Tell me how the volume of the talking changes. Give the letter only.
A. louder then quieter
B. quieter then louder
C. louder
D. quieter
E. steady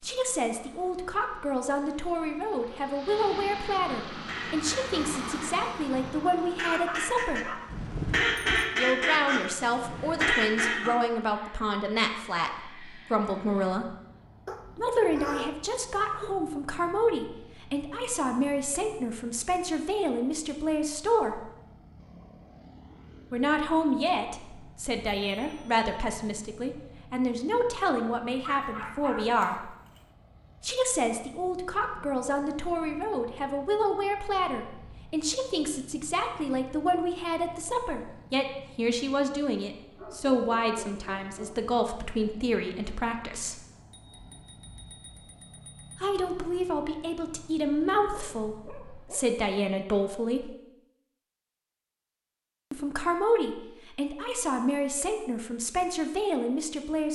E.